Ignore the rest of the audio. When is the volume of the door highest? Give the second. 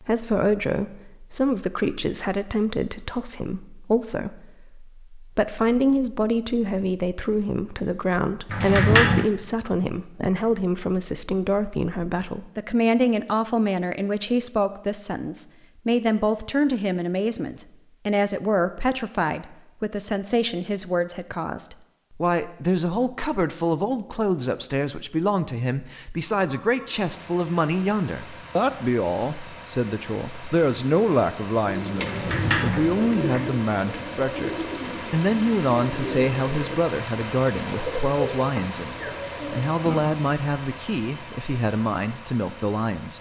9 s.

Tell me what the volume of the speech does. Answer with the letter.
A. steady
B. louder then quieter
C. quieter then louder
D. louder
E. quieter
A.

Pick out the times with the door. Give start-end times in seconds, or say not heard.
8.5-9.3, 32.0-33.5.